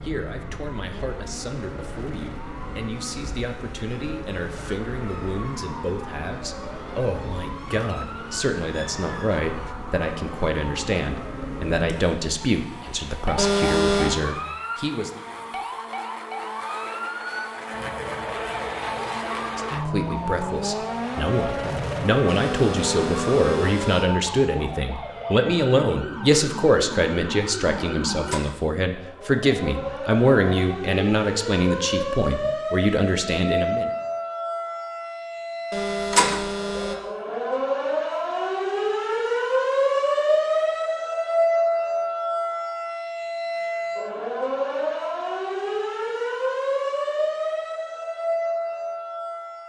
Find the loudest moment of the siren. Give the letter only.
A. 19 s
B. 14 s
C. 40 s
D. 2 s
C.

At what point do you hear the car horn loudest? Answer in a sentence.
The volume of the car horn peaks at 14 seconds.